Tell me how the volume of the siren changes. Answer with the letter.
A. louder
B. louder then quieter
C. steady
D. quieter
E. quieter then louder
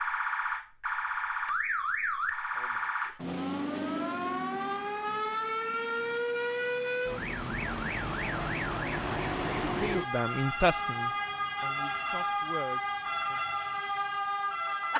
C.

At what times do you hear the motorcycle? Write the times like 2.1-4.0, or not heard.
not heard.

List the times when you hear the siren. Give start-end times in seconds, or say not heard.
0.0-14.9.